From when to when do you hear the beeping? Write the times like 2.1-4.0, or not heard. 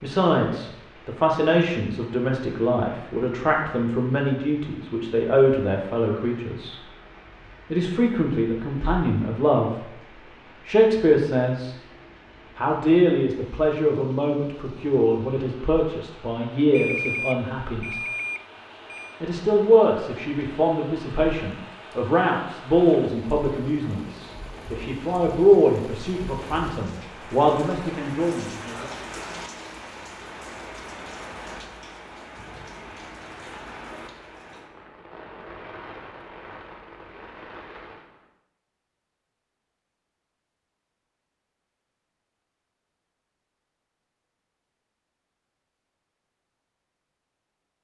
16.7-19.2.